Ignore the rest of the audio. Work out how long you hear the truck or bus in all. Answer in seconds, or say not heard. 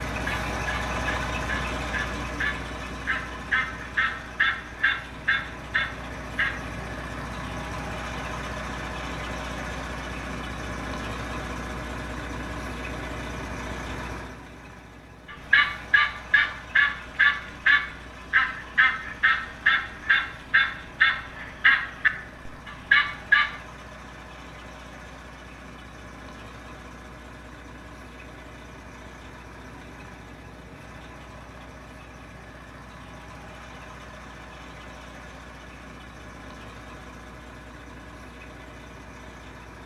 40 s.